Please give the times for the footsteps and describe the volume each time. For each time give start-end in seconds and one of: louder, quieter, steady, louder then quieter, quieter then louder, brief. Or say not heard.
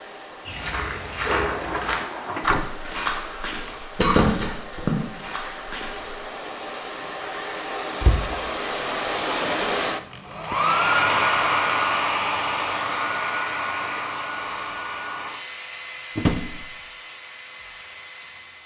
0.5-6.2 quieter.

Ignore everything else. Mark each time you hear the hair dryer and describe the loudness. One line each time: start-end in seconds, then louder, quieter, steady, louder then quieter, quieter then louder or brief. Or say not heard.
0.0-18.6 louder then quieter.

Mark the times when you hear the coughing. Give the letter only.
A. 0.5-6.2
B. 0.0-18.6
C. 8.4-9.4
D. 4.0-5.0
D.